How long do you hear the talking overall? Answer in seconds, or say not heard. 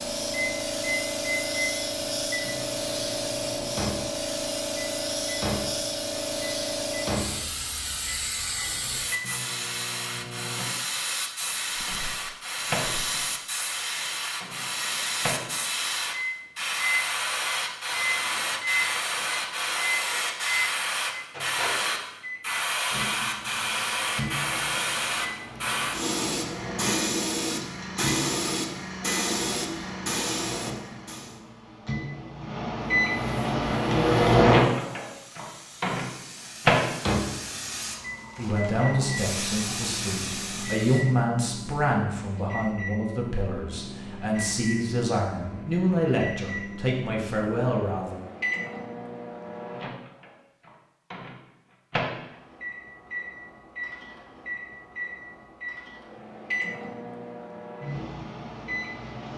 10 s.